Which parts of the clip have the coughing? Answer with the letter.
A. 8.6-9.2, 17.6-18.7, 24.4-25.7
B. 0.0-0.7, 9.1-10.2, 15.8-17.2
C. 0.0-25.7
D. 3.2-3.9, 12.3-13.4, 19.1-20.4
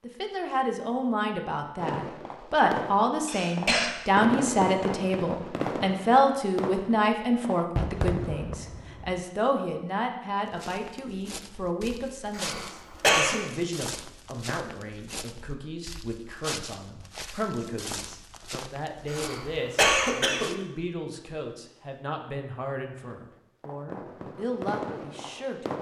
D.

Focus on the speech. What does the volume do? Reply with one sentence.
The volume of the speech goes down.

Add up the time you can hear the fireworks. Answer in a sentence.
The fireworks can be heard for 10 seconds in total.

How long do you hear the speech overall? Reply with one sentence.
The speech can be heard for 26 seconds in total.